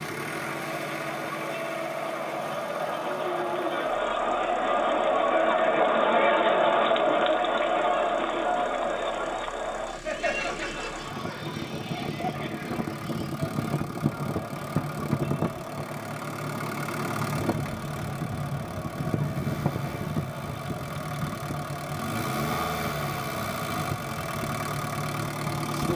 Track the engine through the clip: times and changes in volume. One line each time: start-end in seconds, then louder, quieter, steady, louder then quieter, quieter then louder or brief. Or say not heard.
0.0-25.9 quieter then louder.